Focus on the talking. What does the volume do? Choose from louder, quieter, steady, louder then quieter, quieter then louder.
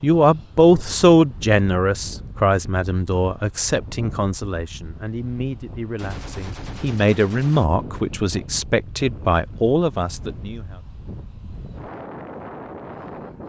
quieter then louder.